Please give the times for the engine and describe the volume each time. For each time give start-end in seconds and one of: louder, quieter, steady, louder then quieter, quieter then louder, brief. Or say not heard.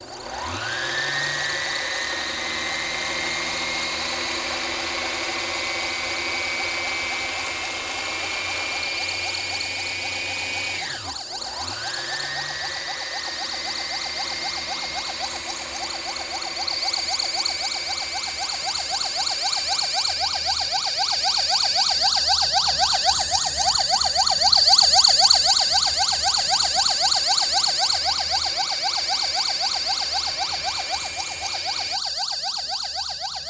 0.0-32.0 quieter.